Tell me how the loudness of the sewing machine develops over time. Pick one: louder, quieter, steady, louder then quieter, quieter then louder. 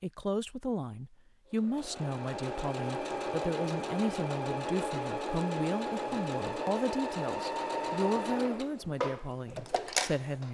steady.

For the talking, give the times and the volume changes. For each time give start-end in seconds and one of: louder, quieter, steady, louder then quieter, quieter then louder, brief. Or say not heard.
0.0-10.4 steady.